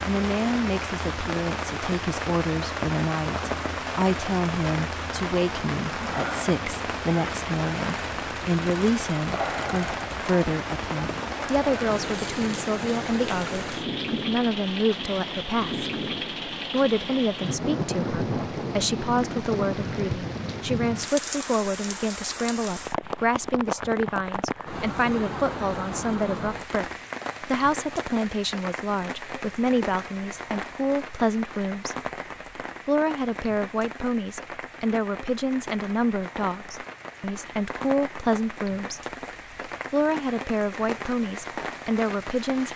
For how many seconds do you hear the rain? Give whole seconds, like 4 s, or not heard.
43 s.